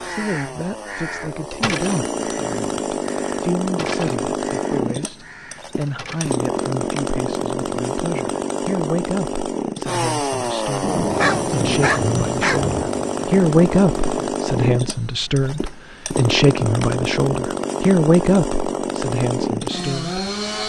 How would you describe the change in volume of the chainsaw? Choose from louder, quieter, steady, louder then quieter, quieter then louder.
steady.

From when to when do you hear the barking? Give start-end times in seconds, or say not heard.
11.1-12.7.